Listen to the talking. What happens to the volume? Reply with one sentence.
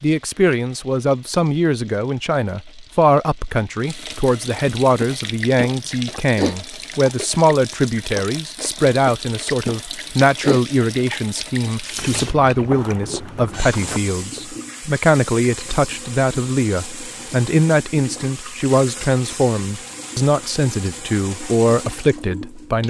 The loudness of the talking stays about the same.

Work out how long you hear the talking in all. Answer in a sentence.
You can hear the talking for 23 seconds altogether.